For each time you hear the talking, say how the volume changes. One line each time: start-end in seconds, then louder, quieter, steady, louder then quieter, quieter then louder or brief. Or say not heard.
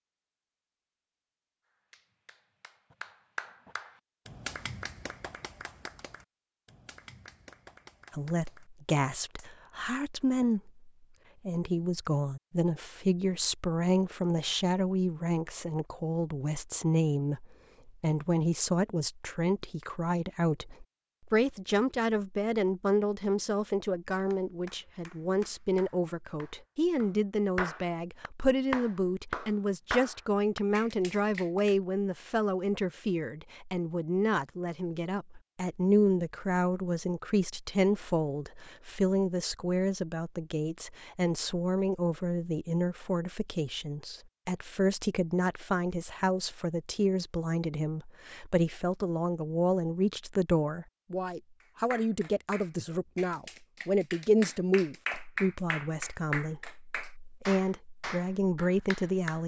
8.1-59.4 steady.